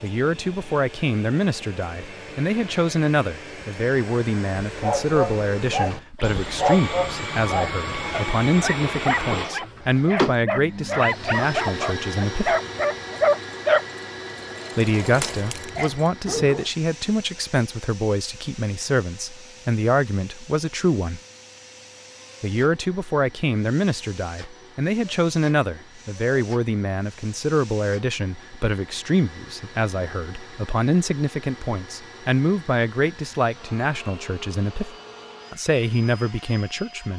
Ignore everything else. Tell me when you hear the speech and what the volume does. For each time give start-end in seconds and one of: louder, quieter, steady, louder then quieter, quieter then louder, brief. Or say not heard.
0.0-12.6 steady
14.8-21.2 steady
22.4-37.1 steady.